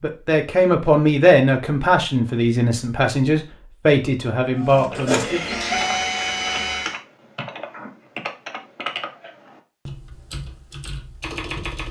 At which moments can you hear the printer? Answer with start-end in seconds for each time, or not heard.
4.5-7.0.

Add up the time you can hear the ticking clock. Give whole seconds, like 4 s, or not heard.
not heard.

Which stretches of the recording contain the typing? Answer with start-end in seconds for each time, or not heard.
4.9-11.8.